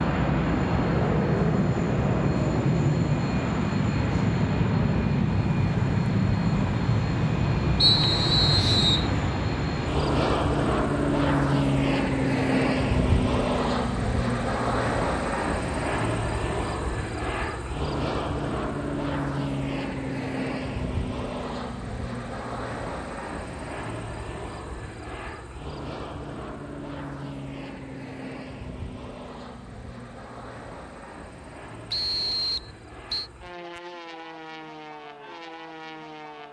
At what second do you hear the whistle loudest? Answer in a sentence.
The loudest moment of the whistle is at 8 seconds.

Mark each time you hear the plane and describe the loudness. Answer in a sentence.
The plane can be heard from 0.0 to 36.4 s, getting quieter.